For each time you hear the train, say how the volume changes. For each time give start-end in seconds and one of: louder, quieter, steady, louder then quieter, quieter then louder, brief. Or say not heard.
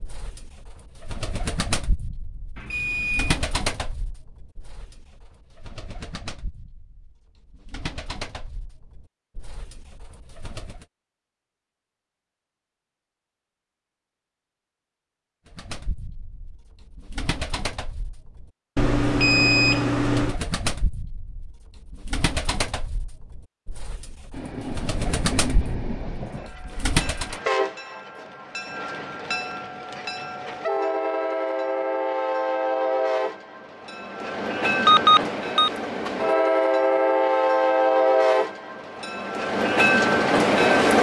24.3-40.9 louder.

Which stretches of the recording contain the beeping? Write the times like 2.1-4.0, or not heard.
2.5-3.4, 18.8-20.4, 34.9-35.7.